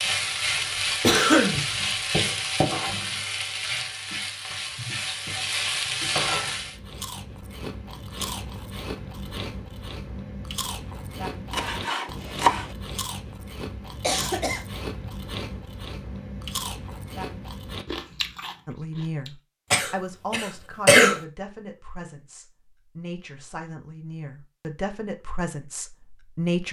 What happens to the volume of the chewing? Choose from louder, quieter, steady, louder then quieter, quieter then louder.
steady.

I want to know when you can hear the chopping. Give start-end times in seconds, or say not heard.
11.5-12.8.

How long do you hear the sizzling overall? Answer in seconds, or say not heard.
7 s.